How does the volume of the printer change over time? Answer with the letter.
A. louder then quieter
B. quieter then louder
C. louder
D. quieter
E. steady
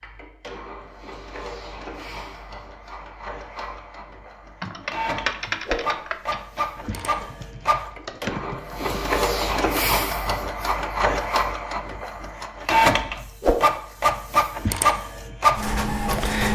C.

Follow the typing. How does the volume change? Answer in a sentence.
The volume of the typing goes down, then up.